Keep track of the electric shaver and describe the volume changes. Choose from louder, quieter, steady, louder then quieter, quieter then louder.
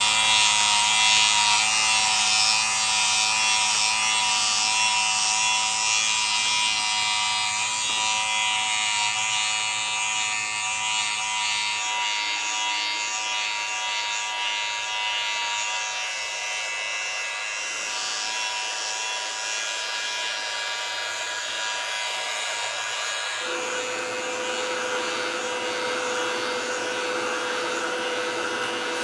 quieter.